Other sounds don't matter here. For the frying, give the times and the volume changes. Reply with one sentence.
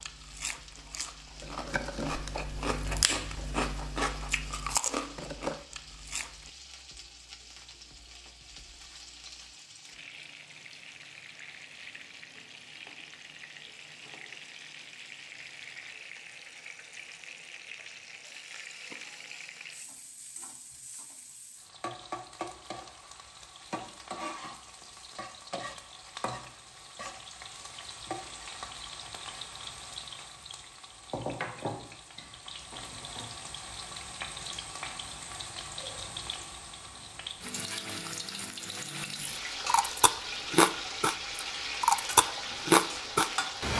You can hear the frying from 0.0 to 43.7 s, getting louder.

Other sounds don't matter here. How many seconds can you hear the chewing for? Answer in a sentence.
You can hear the chewing for 11 seconds altogether.